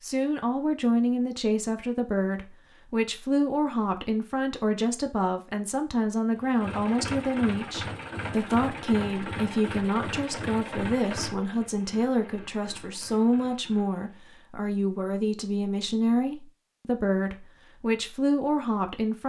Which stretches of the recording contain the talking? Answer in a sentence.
You can hear the talking from 0.0 to 19.2 s.